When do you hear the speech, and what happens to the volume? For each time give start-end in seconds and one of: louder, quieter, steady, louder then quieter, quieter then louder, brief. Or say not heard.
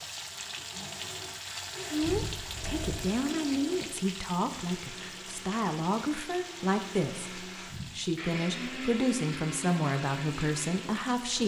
1.9-11.4 steady.